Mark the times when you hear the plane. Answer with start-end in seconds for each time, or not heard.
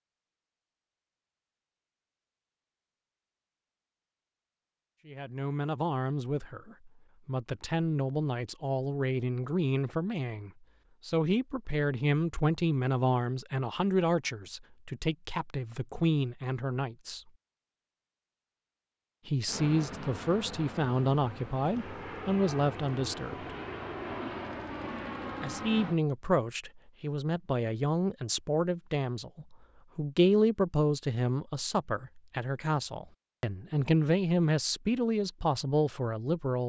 19.4-26.0.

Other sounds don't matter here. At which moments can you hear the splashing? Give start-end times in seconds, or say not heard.
not heard.